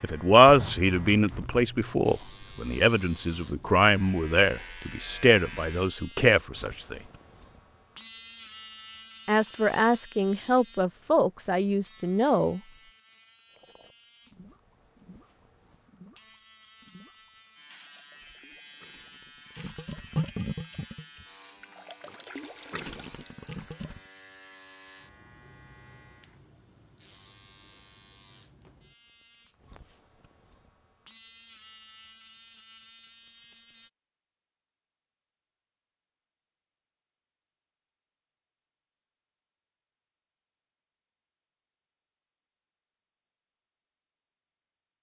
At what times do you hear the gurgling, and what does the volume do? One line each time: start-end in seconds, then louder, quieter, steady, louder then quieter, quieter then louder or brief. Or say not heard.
13.5-24.0 louder then quieter.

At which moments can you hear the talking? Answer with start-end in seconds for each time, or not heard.
0.0-7.0, 9.2-12.6.